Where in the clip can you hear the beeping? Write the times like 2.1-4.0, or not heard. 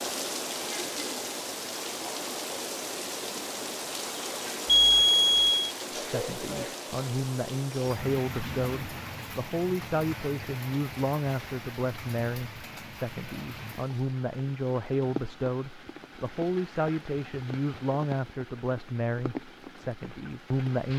4.7-5.7.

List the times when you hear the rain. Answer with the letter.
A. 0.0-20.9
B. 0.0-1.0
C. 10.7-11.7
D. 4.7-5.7
A.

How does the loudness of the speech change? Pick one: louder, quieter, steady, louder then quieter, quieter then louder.
steady.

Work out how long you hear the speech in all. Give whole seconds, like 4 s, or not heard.
15 s.